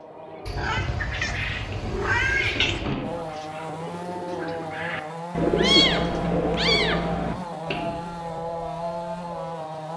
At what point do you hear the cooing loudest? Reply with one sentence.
The volume of the cooing peaks at 6 seconds.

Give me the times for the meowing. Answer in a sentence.
The meowing can be heard from 0.5 to 2.9 s and from 5.3 to 7.3 s.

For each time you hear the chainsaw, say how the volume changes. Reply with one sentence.
The chainsaw can be heard from 0.0 to 9.9 s, getting louder.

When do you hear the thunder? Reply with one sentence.
You can't hear the thunder here.